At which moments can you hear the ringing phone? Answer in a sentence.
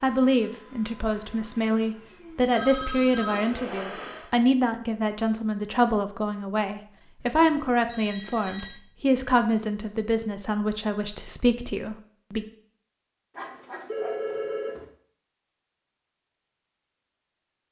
You can hear the ringing phone from 2.5 to 3.5 s, from 7.2 to 8.8 s and from 13.3 to 14.8 s.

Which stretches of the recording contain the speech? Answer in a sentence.
You can hear the speech from 0.0 to 12.4 s.